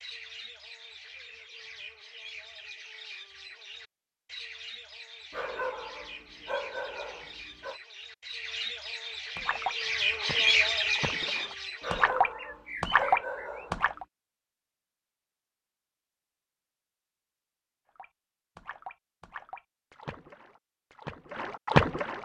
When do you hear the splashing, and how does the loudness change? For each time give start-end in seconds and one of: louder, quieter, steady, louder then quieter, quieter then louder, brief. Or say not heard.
9.3-14.1 louder
17.9-22.1 quieter then louder.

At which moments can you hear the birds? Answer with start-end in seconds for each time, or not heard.
0.0-13.7.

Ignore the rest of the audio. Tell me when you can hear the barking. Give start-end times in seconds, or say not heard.
5.3-7.8, 11.8-14.0.